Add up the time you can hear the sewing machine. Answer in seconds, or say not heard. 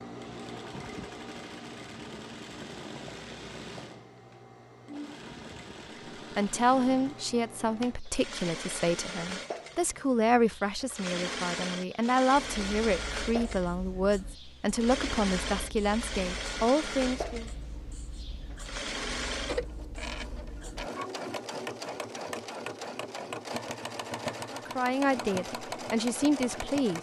27 s.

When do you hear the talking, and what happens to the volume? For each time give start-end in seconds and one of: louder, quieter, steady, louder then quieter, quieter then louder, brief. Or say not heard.
6.3-17.5 steady
24.5-26.9 brief.